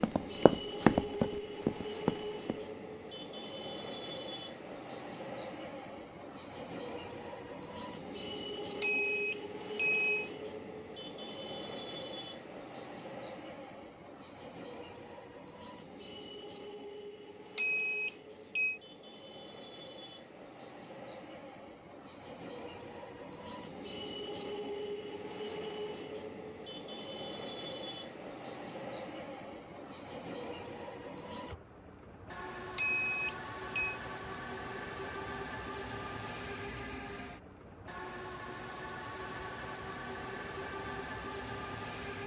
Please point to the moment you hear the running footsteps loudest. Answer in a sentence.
The loudest moment of the running footsteps is at 1 second.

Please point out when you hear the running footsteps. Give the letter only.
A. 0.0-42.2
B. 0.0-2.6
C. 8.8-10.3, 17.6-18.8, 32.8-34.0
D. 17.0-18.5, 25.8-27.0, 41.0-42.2
B.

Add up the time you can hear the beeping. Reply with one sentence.
The beeping can be heard for 4 seconds in total.